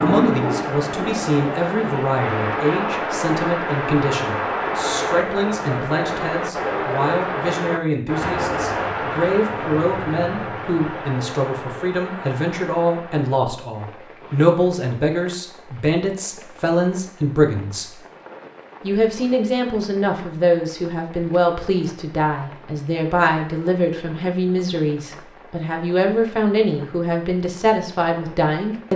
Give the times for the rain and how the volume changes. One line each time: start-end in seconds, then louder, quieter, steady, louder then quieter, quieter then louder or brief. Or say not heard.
0.0-28.9 quieter.